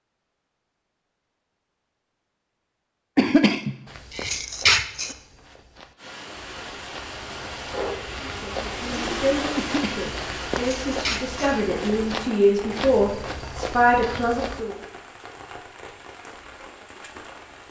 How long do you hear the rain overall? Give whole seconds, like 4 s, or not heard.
12 s.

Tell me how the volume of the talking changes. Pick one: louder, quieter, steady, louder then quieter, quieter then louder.
louder.